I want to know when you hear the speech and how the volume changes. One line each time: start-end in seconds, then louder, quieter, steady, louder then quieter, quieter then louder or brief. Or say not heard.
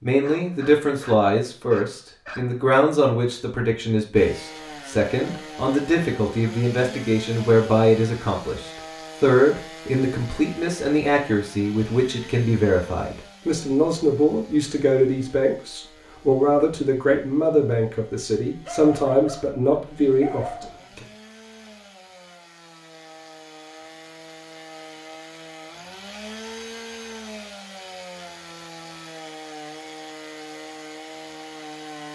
0.0-21.1 steady.